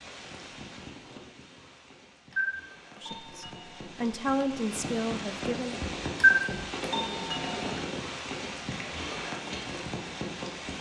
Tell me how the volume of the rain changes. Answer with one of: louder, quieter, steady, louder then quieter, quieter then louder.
louder.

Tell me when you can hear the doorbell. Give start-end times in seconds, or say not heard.
2.3-3.8, 6.2-7.7.